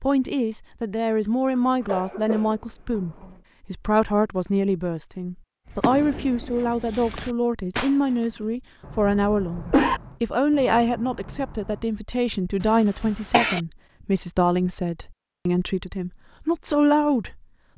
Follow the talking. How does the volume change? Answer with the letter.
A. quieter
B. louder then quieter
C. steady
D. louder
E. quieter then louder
C.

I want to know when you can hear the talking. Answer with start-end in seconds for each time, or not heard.
0.0-17.4.